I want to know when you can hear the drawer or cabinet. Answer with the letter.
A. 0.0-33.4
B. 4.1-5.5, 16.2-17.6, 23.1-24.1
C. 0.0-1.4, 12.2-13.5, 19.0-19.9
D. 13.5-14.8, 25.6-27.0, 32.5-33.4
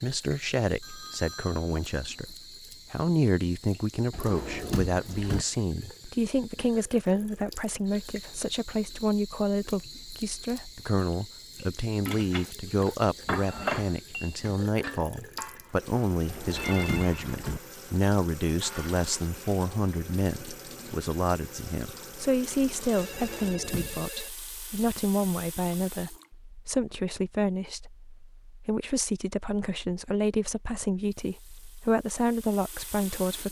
B.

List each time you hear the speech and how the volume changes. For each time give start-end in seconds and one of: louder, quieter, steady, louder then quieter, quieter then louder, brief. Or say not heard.
0.0-33.4 steady.